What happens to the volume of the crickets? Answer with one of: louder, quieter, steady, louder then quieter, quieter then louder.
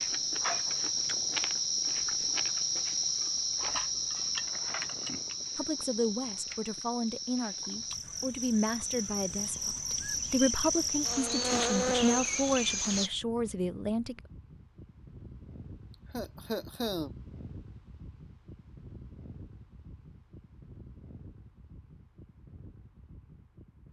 quieter then louder.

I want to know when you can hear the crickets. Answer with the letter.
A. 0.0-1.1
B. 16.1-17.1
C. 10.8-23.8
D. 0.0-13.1
D.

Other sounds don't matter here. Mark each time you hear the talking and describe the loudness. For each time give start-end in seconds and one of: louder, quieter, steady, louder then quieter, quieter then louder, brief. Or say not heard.
5.5-14.2 steady.